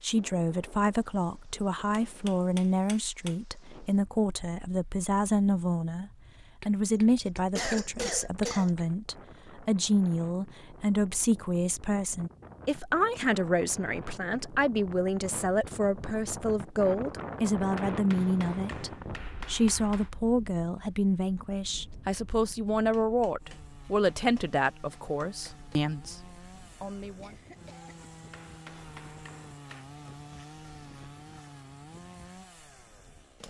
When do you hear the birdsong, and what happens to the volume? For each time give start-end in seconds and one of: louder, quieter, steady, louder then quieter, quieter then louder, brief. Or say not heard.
not heard.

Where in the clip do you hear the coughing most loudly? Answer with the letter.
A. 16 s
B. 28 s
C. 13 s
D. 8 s
D.